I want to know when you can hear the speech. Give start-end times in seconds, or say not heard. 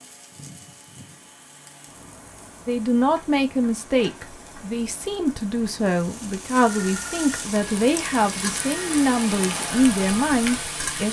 2.6-11.0.